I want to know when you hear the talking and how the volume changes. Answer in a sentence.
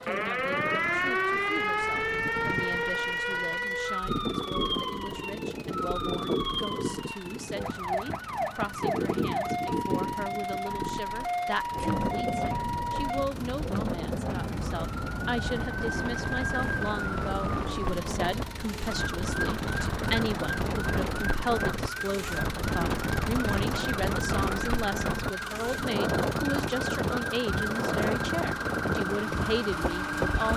You can hear the talking from 0.0 to 30.5 s, getting louder.